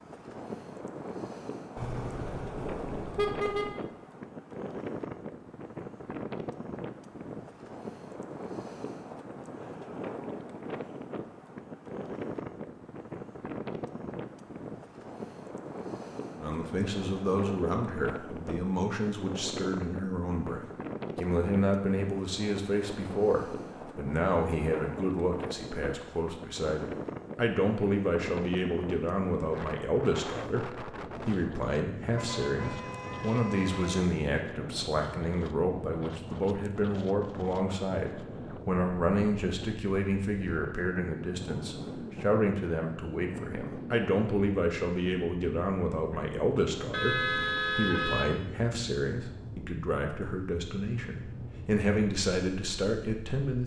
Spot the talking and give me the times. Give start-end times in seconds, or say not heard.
16.4-53.6.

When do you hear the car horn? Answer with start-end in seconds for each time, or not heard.
1.8-3.8, 32.0-34.0, 46.9-48.4.